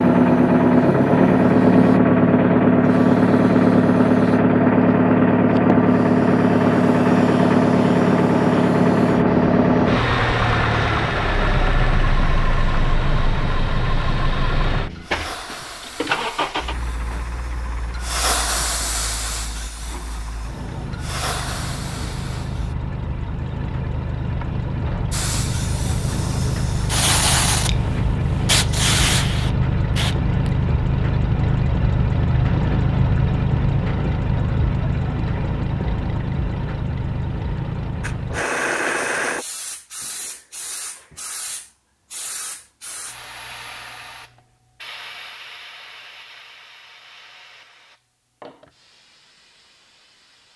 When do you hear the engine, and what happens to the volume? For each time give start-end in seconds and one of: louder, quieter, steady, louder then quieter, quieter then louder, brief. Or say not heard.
0.0-39.5 quieter then louder.